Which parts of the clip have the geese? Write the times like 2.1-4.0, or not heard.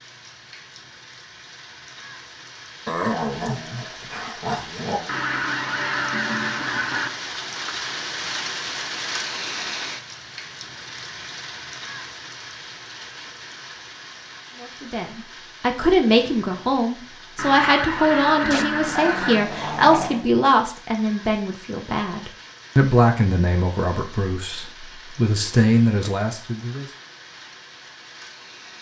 5.0-7.1, 17.4-19.4.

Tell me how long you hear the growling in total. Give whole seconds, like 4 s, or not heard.
4 s.